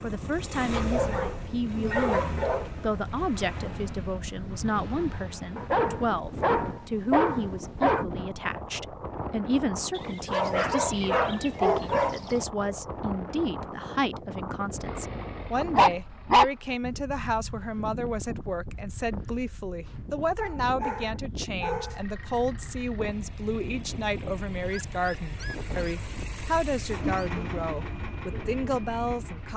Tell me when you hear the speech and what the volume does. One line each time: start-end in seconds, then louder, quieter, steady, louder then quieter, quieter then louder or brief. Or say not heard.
0.0-29.5 steady.